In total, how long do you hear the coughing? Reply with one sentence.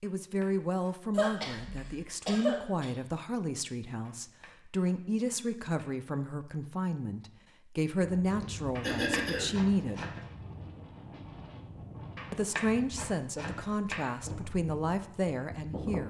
You can hear the coughing for 3 seconds altogether.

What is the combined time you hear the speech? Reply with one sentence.
The speech can be heard for 14 seconds in total.